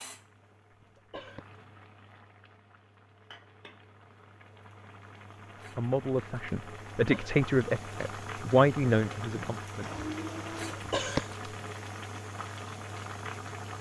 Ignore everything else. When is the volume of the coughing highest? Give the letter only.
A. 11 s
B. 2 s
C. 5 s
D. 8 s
A.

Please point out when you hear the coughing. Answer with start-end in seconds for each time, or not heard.
0.7-1.4, 7.0-7.4, 10.9-11.3.